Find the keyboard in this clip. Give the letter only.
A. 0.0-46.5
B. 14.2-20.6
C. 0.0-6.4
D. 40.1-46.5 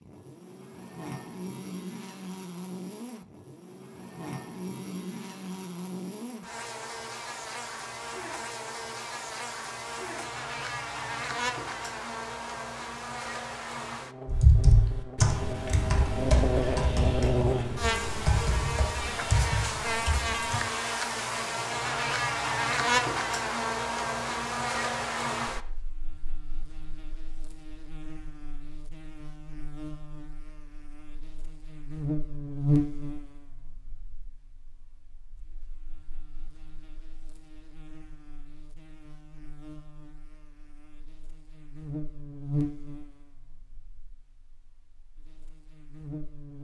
B.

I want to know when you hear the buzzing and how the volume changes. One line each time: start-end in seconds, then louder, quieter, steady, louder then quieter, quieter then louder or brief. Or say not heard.
0.0-46.5 louder then quieter.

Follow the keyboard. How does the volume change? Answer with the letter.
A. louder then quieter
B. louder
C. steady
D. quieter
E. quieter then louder
D.